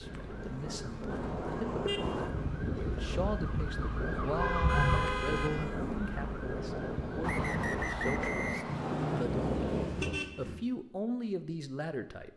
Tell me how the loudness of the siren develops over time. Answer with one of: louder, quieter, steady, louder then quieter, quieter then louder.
louder then quieter.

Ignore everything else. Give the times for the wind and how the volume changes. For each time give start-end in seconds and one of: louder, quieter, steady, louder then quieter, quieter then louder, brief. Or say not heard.
0.0-10.2 louder.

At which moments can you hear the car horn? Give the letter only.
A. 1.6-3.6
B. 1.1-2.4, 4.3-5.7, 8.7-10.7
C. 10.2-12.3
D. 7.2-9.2
B.